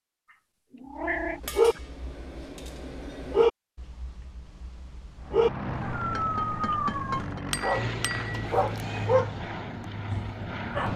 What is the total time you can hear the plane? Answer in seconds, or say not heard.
6 s.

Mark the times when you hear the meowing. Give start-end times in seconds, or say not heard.
0.3-1.8, 7.5-9.2.